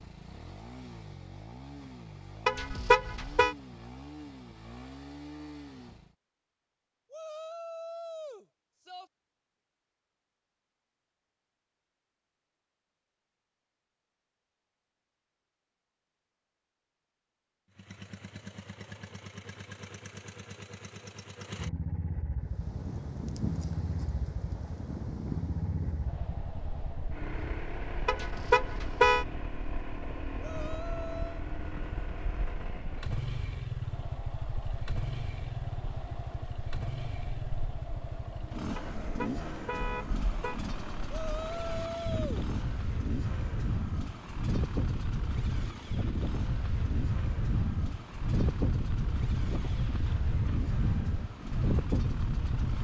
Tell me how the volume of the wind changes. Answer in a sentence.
The loudness of the wind goes down, then up.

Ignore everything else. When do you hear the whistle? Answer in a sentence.
You can't hear the whistle here.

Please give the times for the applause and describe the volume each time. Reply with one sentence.
You can't hear the applause here.